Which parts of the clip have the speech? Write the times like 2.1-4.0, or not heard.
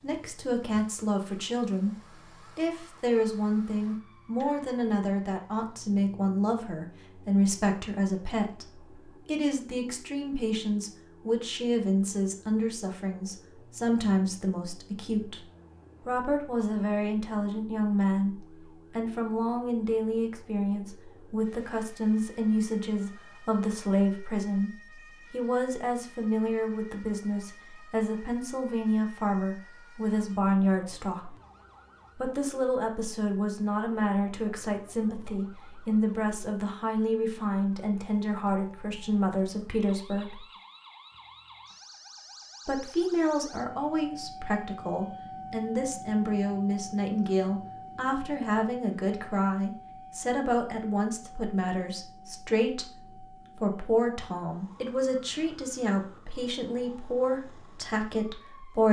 0.0-1.9, 2.5-15.4, 16.1-31.4, 32.1-40.5, 42.6-58.8.